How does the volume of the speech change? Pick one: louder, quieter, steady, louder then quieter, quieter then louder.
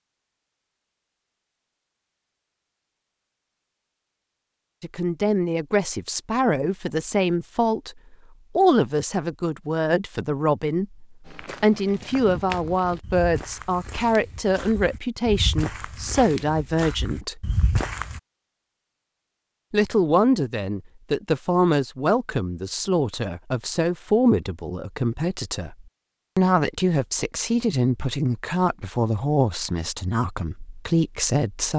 steady.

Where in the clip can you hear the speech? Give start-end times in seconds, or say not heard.
4.8-17.4, 19.7-31.7.